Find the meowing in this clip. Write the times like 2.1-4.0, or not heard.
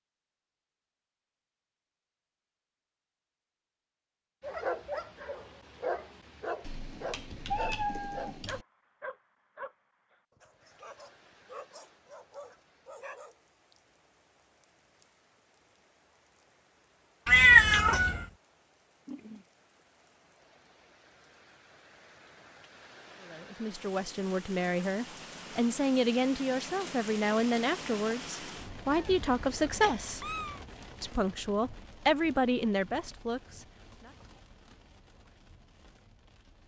6.6-8.7, 17.2-18.2, 28.9-30.6.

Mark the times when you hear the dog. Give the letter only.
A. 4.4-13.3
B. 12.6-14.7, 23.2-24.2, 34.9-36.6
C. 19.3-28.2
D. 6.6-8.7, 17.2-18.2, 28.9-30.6
A.